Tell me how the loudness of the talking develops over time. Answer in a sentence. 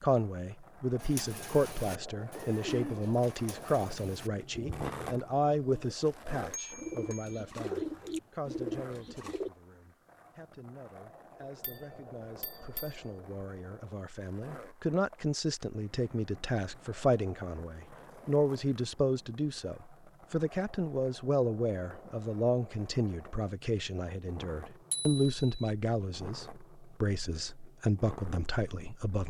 The loudness of the talking goes down, then up.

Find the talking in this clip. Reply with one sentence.
You can hear the talking from 0.0 to 29.2 s.